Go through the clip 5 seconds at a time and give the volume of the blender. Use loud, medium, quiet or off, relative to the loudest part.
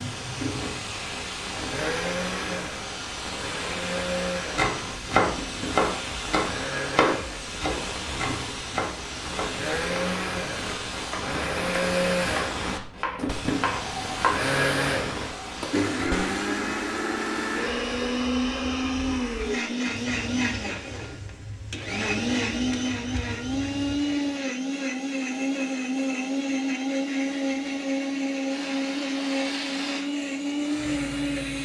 medium, medium, loud, loud, loud, loud, loud.